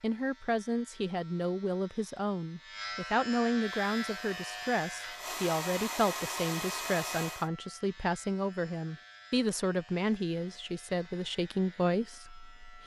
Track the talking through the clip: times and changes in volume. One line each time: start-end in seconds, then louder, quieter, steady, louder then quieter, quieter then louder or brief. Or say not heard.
0.0-12.8 steady.